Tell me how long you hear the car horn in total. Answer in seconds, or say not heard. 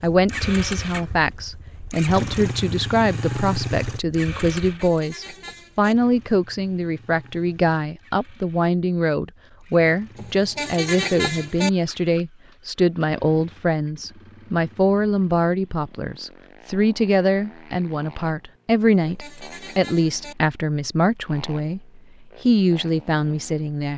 4 s.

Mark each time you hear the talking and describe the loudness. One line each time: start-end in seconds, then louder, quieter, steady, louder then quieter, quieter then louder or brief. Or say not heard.
0.0-23.9 steady.